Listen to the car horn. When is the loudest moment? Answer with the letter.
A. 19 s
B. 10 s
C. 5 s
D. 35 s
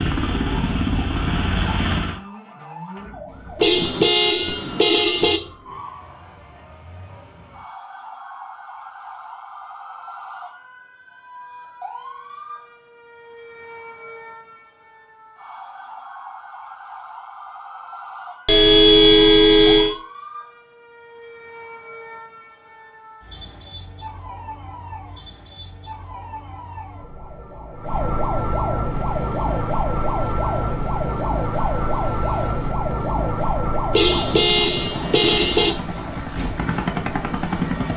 A.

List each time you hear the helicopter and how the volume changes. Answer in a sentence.
The helicopter can be heard briefly from 0.0 to 2.2 s; and from 28.8 to 37.9 s, getting louder.